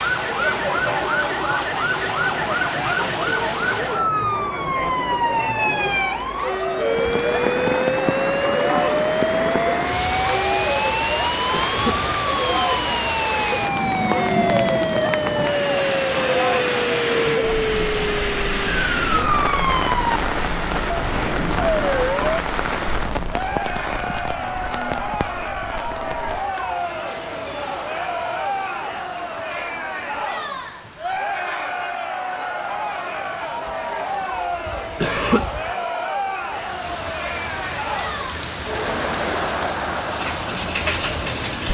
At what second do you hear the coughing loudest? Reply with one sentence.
The volume of the coughing peaks at 35 seconds.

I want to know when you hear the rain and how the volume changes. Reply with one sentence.
The rain can be heard from 6.7 to 41.7 s, getting quieter then louder.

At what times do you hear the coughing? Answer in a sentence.
The coughing can be heard from 11.5 to 12.0 s and from 35.0 to 35.5 s.